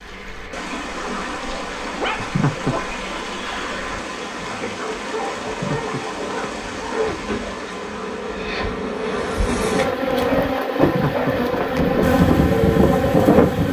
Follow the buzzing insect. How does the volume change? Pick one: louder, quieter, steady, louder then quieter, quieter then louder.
louder.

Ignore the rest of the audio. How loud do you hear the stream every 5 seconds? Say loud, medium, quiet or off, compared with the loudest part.
loud, loud, off.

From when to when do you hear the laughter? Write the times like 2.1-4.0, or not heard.
2.1-2.8, 5.5-6.5, 10.8-11.8.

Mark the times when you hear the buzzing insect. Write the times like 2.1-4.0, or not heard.
0.0-13.6.